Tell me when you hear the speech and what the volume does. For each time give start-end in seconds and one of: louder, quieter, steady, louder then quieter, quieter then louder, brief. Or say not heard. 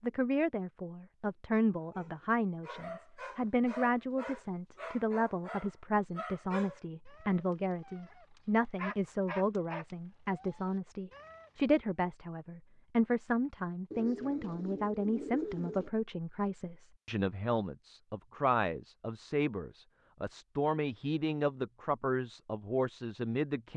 0.0-23.7 steady.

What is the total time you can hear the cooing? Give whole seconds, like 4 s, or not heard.
2 s.